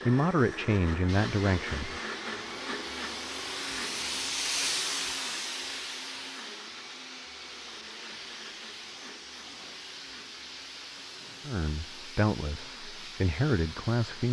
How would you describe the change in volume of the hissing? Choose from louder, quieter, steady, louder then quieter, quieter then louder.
louder then quieter.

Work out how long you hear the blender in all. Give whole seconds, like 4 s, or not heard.
14 s.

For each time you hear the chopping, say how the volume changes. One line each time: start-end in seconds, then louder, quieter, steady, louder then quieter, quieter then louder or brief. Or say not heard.
not heard.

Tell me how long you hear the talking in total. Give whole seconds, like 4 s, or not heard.
5 s.